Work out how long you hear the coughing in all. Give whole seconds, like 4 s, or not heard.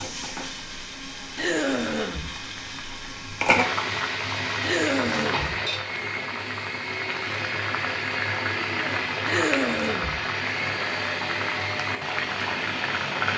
3 s.